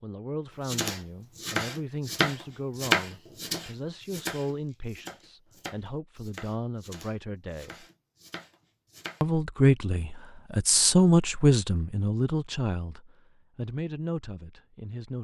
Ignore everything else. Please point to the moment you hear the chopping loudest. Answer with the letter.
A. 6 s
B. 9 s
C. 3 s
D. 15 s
C.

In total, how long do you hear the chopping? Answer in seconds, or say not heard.
9 s.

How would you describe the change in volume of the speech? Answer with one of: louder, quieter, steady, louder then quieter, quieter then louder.
louder then quieter.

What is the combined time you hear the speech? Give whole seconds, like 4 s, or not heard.
14 s.